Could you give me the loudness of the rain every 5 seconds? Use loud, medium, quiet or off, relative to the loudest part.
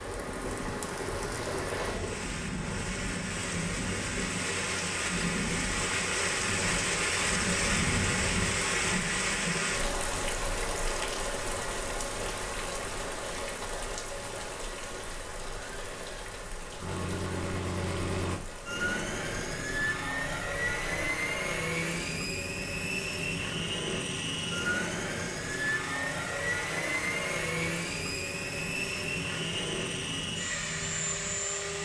medium, loud, medium, quiet, quiet, quiet, quiet.